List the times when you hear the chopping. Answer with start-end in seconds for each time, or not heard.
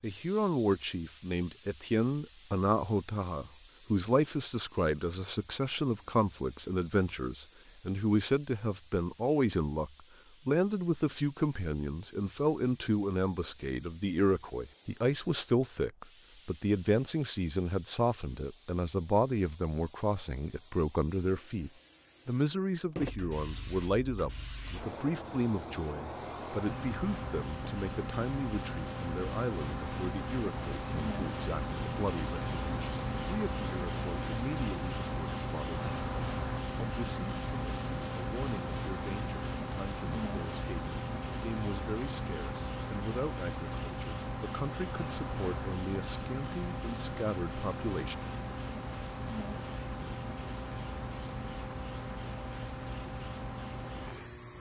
not heard.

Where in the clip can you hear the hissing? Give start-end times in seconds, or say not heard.
0.0-54.5.